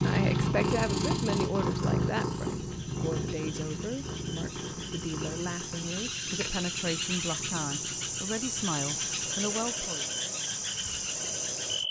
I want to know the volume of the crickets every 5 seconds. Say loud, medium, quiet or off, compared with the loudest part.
quiet, loud, loud.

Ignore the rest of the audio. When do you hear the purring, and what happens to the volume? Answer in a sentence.
You can hear the purring from 0.0 to 11.8 s, getting quieter.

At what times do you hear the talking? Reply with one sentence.
The talking can be heard from 0.0 to 10.1 s.